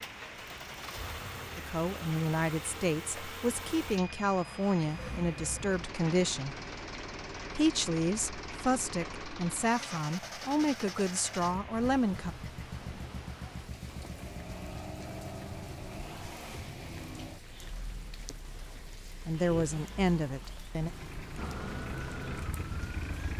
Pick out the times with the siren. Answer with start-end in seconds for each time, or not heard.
21.4-23.3.